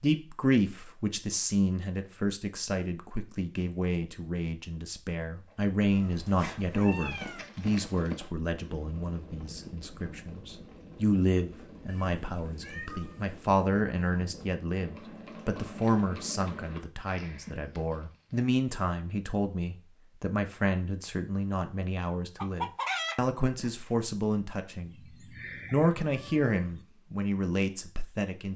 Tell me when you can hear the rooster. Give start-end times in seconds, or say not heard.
22.4-23.7.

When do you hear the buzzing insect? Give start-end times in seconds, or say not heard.
not heard.